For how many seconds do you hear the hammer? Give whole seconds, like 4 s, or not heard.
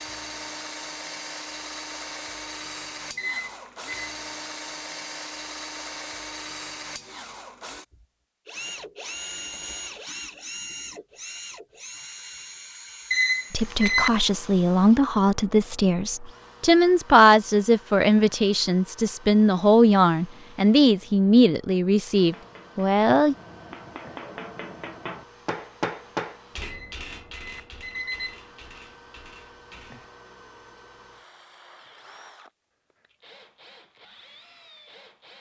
8 s.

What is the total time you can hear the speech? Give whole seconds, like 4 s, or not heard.
10 s.